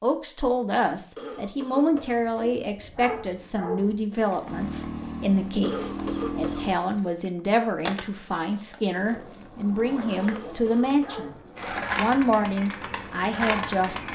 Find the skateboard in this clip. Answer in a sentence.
You can hear the skateboard from 4.1 to 14.0 s.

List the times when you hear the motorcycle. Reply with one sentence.
The motorcycle can be heard from 4.4 to 6.8 s.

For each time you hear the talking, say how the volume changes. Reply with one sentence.
The talking can be heard from 0.0 to 11.3 s, at a steady volume; and briefly from 11.9 to 14.0 s.